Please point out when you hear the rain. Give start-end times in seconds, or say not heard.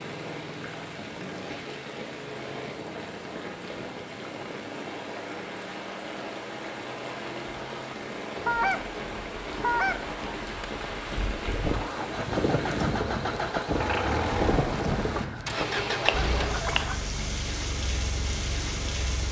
0.0-19.2.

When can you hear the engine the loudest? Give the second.
14 s.